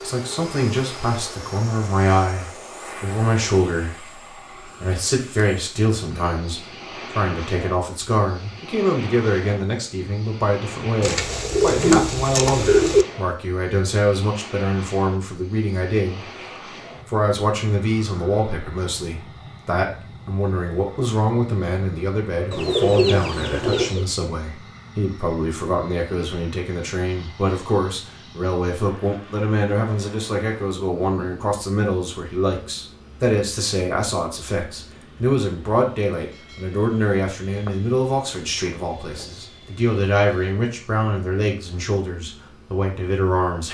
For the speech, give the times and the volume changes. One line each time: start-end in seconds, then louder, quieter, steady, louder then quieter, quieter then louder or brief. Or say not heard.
0.0-16.2 steady
17.1-43.6 steady.